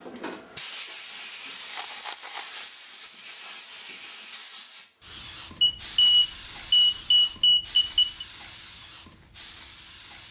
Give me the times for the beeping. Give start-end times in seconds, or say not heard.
5.6-8.2.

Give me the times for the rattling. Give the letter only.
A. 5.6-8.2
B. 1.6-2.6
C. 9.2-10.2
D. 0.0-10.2
B.